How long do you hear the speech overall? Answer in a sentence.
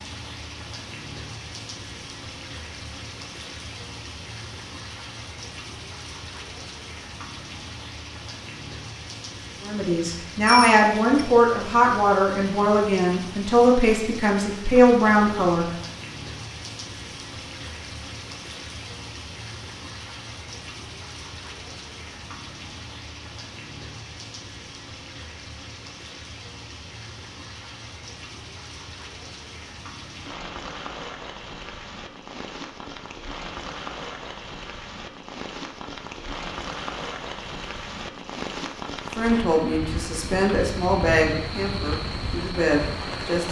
The speech can be heard for 10 seconds in total.